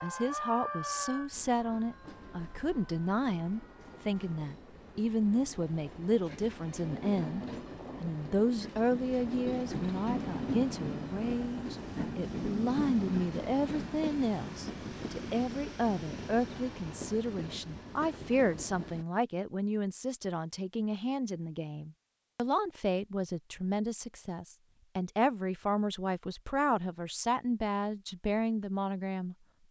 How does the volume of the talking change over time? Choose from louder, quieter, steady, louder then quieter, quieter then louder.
steady.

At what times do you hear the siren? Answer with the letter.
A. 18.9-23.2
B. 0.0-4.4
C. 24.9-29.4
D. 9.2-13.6
B.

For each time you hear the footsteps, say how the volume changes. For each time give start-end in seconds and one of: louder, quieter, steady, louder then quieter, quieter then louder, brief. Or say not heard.
not heard.